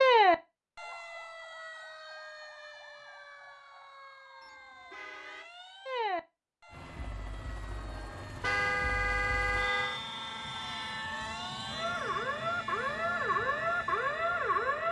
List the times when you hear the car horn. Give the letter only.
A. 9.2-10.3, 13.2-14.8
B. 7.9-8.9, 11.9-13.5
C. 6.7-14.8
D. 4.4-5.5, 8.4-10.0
D.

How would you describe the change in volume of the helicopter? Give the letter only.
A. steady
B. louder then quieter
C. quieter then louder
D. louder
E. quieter
D.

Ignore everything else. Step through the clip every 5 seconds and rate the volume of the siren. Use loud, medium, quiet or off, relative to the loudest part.
loud, medium, loud.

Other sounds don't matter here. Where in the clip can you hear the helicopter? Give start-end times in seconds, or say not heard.
6.7-14.8.